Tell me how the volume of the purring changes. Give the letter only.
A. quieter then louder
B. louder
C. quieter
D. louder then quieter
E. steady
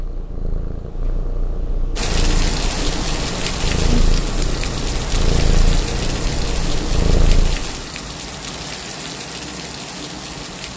B.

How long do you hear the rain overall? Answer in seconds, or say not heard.
9 s.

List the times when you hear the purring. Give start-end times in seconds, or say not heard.
0.0-7.8.